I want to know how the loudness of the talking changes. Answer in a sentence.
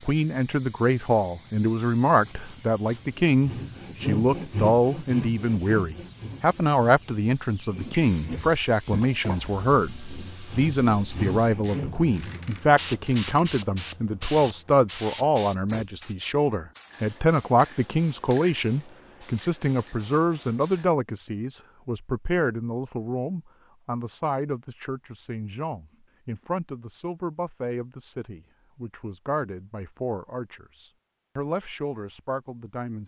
The loudness of the talking goes down.